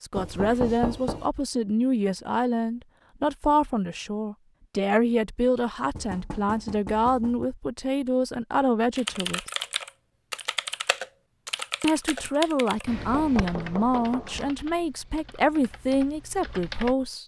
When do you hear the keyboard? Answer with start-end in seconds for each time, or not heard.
8.9-16.9.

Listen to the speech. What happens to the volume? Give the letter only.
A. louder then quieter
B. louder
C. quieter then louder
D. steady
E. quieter
D.